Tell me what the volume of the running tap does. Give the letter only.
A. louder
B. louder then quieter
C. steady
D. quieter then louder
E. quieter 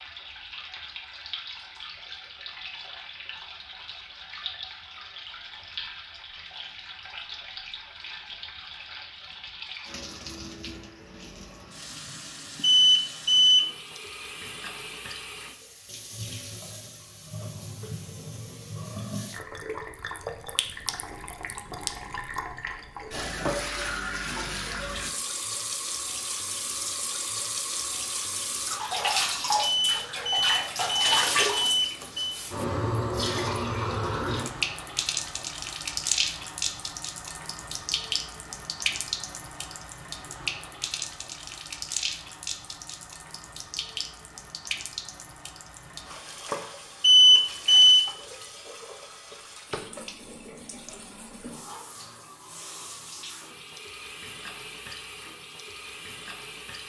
B.